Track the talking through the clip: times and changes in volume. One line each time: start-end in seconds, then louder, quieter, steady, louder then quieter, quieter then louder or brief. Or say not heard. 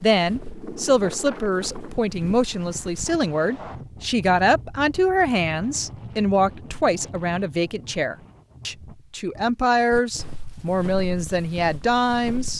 0.0-12.5 steady.